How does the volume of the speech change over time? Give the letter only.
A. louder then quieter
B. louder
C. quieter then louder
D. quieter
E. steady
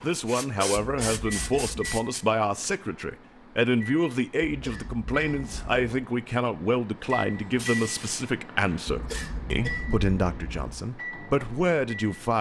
E.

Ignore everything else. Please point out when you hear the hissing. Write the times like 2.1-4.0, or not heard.
0.0-2.2, 7.2-9.3.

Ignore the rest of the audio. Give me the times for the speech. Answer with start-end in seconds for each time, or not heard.
0.0-12.3.